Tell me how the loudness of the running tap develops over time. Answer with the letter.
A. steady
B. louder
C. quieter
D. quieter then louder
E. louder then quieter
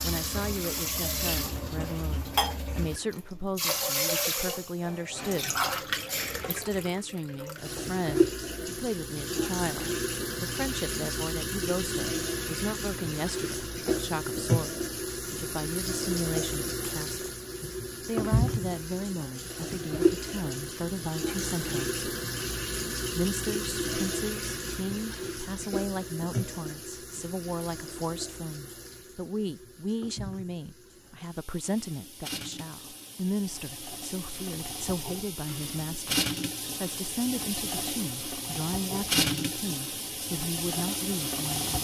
D.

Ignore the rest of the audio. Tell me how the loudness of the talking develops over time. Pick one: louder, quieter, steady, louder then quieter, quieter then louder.
steady.